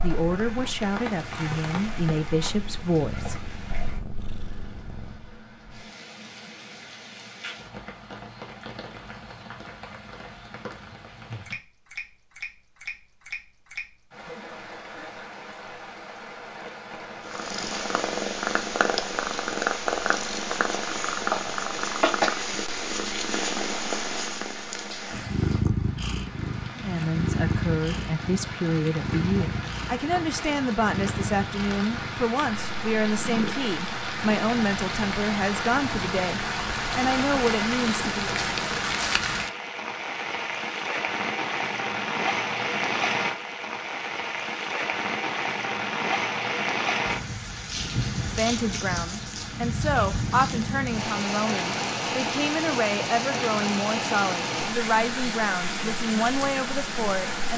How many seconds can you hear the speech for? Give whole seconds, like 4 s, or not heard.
24 s.